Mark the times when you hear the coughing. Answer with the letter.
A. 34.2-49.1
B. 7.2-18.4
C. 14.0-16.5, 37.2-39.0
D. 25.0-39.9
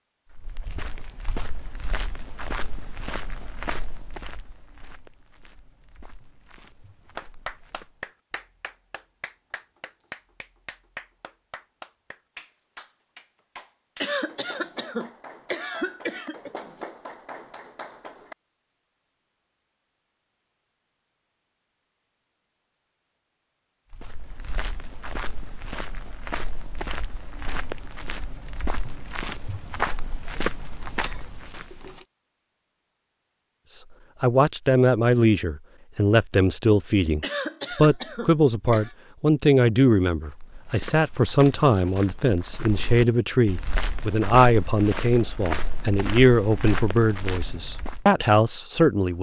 C.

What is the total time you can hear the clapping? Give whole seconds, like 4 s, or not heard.
11 s.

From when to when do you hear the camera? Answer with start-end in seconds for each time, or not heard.
31.3-32.1.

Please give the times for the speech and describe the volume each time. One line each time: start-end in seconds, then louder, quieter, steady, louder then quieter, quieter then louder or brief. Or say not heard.
34.2-49.1 steady.